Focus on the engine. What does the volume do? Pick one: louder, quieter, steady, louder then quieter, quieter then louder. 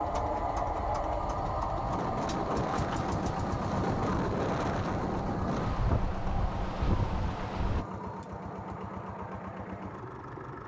quieter.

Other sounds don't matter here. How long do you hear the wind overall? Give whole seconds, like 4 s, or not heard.
8 s.